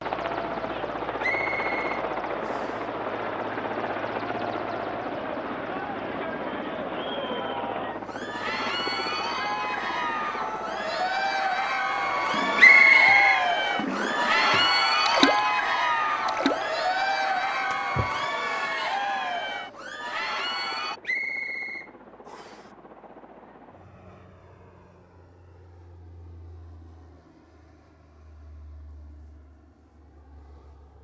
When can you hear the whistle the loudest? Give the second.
13 s.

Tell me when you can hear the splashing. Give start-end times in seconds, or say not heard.
12.2-15.4, 16.2-16.8, 17.7-18.9.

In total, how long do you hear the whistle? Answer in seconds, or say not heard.
4 s.